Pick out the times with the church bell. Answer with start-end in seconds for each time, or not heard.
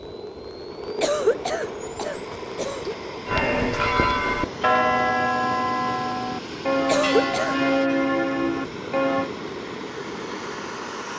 3.2-9.3.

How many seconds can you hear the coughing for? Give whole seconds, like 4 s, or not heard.
3 s.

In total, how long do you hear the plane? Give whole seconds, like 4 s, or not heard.
11 s.